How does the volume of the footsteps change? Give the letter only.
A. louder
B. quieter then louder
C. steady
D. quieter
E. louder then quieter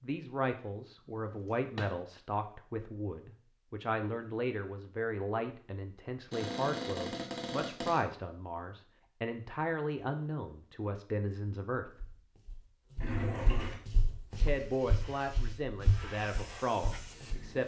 E.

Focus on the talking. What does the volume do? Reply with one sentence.
The loudness of the talking stays about the same.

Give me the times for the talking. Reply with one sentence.
You can hear the talking from 0.0 to 11.9 s and from 14.3 to 17.6 s.